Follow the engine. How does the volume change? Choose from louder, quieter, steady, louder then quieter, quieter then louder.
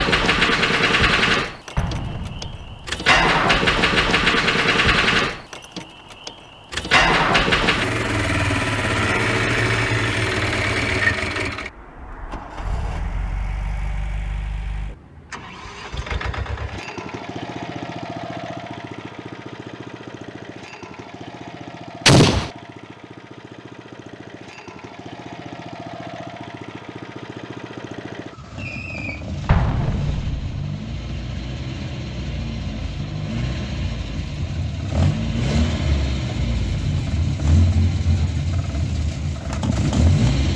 quieter then louder.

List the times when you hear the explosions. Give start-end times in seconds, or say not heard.
1.8-2.9, 22.1-22.5, 29.4-30.6.